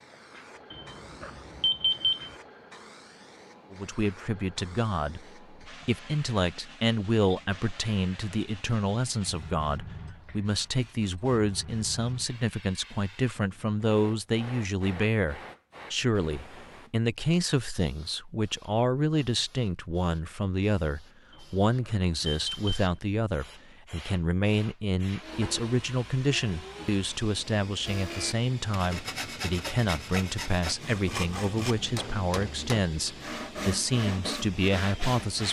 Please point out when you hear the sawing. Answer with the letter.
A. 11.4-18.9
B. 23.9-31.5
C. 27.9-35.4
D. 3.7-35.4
C.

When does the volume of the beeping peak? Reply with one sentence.
The volume of the beeping peaks at 2 seconds.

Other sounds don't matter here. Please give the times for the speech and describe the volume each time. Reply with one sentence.
The speech can be heard from 3.7 to 35.4 s, at a steady volume.